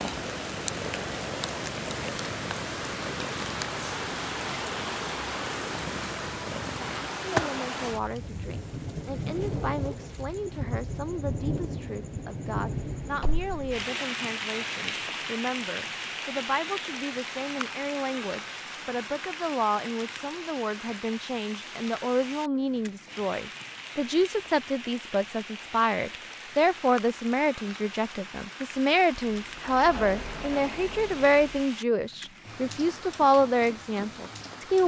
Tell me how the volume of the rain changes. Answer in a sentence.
The loudness of the rain goes down.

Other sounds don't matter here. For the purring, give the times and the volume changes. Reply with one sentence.
The purring can be heard from 0.0 to 7.0 s, at a steady volume.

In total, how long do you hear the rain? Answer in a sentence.
The rain can be heard for 35 seconds in total.